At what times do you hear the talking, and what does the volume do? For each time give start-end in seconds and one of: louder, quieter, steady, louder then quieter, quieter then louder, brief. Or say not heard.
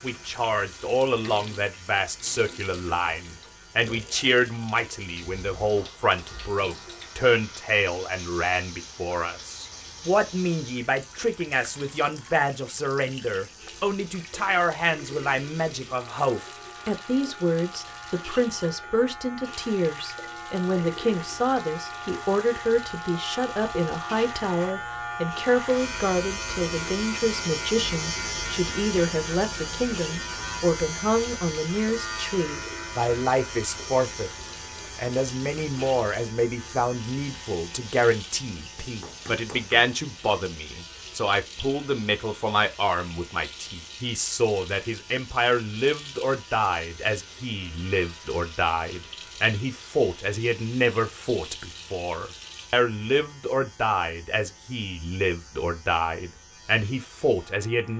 0.0-57.9 steady.